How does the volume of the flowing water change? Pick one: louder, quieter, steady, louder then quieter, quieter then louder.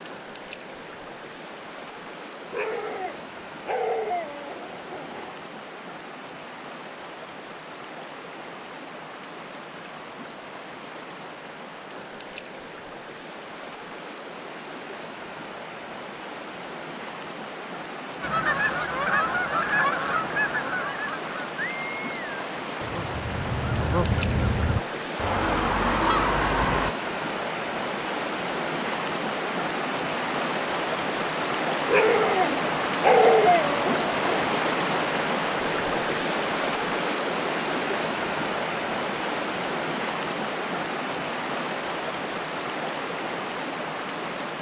louder.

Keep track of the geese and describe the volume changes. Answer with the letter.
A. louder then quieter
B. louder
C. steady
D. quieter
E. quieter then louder
E.